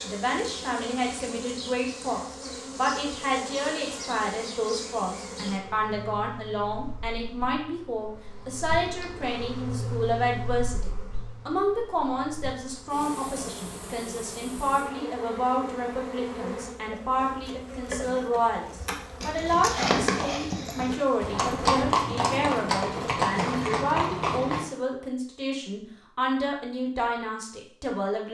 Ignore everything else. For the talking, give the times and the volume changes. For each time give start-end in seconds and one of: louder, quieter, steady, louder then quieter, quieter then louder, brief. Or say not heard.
0.0-28.2 steady.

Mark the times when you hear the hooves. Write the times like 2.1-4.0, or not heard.
19.2-24.7.